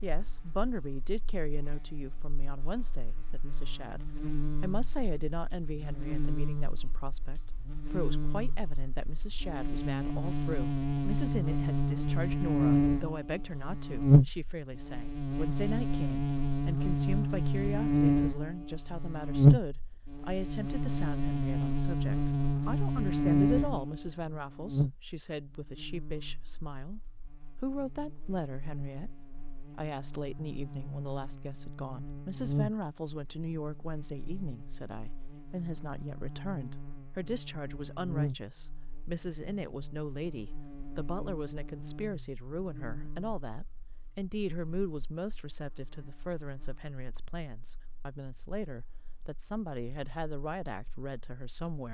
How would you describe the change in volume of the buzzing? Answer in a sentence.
The volume of the buzzing goes up, then down.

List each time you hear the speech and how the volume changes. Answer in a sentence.
The speech can be heard from 0.0 to 51.8 s, at a steady volume.